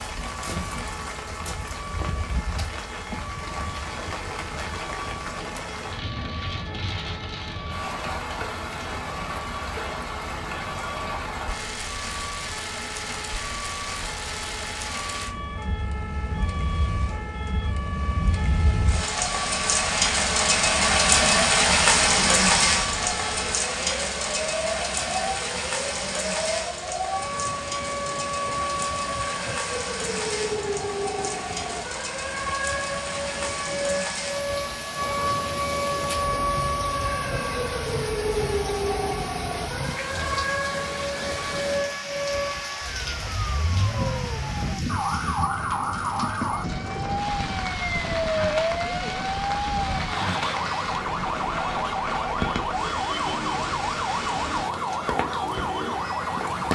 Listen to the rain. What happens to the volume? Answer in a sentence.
The loudness of the rain goes up, then down.